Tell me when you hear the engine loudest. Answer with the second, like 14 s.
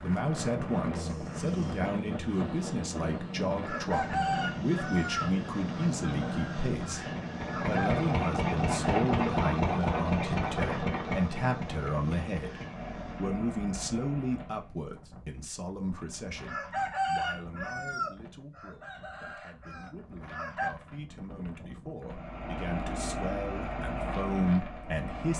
9 s.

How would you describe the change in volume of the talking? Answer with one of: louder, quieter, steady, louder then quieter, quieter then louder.
quieter then louder.